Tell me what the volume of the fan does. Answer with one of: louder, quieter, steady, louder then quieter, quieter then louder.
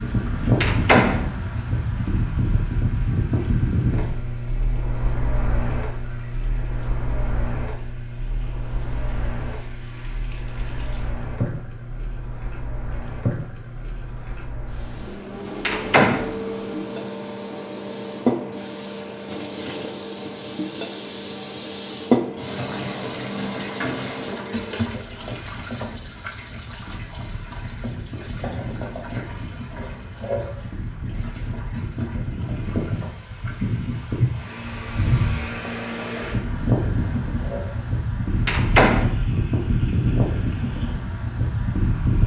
quieter then louder.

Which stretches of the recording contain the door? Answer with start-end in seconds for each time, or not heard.
0.6-1.3, 15.7-16.3, 38.5-39.1.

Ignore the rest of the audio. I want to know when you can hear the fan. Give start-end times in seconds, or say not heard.
0.0-42.2.